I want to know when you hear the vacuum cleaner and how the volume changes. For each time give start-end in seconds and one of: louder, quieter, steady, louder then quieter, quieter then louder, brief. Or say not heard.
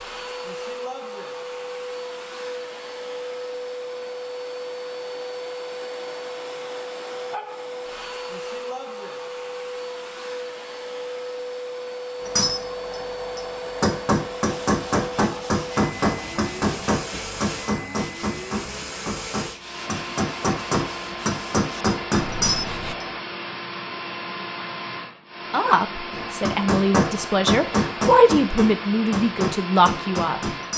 0.0-30.7 steady.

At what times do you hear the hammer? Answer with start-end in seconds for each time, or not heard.
12.2-23.1, 26.1-30.7.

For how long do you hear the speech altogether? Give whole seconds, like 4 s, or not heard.
5 s.